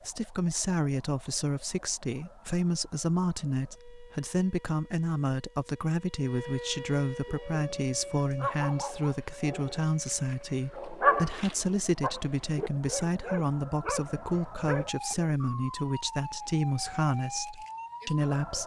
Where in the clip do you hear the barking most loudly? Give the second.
11 s.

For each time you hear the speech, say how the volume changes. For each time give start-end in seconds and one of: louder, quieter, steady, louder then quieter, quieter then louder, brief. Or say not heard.
0.0-18.6 steady.